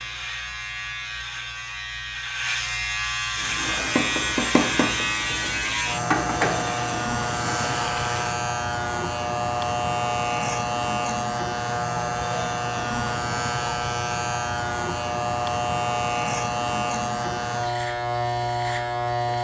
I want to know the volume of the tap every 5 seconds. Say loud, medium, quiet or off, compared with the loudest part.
loud, loud, off, off.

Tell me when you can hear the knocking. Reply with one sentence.
The knocking can be heard from 4.0 to 5.5 s.